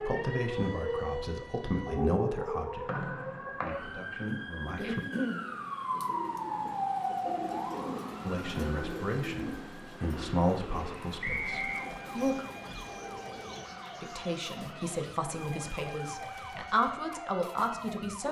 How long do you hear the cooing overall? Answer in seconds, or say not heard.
10 s.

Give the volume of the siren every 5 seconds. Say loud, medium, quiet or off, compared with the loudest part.
loud, loud, medium, medium.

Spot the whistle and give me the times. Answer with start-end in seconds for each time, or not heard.
2.9-3.8, 11.2-11.8.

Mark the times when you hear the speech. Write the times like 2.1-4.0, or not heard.
0.0-5.0, 8.2-12.4, 14.0-18.2.